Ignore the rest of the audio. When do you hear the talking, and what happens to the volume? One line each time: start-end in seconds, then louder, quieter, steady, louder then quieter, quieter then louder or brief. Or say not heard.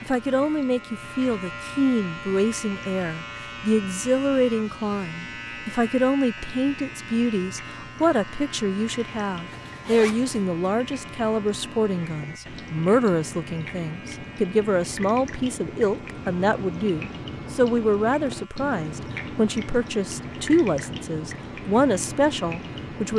0.0-23.1 steady.